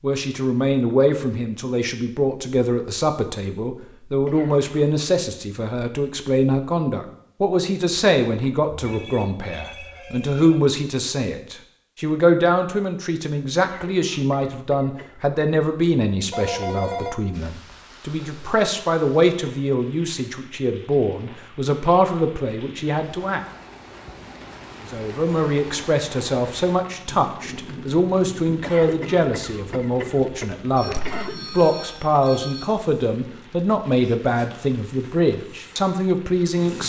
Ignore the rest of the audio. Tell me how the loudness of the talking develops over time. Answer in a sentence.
The loudness of the talking stays about the same.